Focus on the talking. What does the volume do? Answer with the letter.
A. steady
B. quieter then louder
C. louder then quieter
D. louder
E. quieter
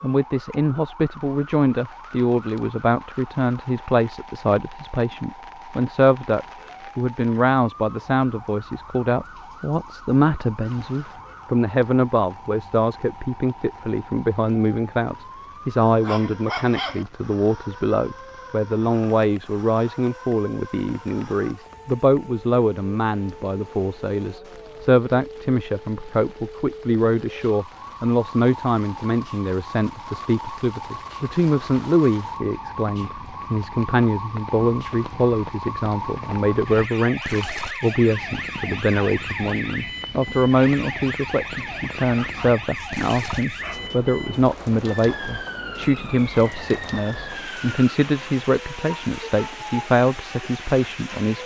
A.